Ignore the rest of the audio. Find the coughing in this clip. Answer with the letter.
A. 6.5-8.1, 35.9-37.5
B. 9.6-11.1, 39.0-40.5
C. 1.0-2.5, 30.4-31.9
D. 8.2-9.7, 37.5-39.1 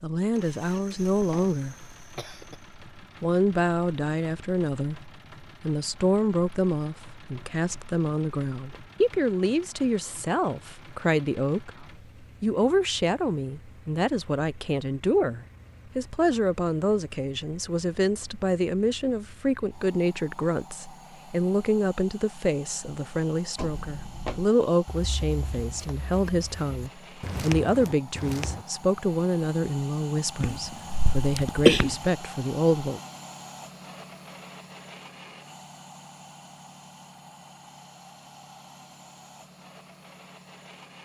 C.